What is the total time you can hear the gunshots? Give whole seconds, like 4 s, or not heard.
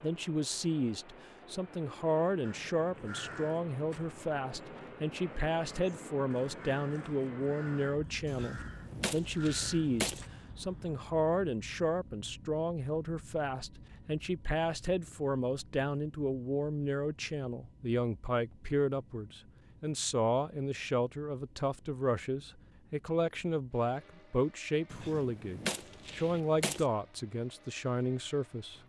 4 s.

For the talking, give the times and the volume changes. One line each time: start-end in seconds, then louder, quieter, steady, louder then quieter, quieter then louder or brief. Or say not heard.
0.0-28.8 steady.